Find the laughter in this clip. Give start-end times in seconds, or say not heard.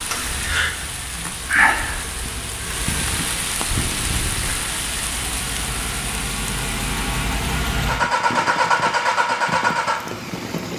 not heard.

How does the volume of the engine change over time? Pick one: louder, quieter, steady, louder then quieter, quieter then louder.
louder.